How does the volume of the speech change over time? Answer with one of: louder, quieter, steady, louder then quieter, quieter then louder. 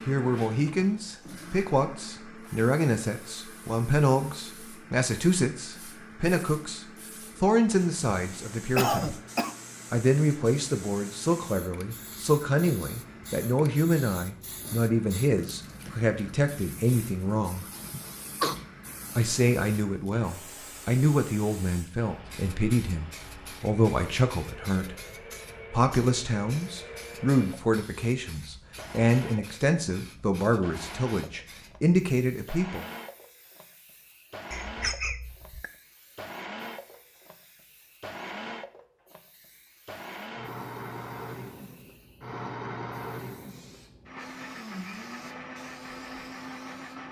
steady.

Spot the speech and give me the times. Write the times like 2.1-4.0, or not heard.
0.1-9.2, 9.9-17.6, 19.1-24.9, 25.7-32.9.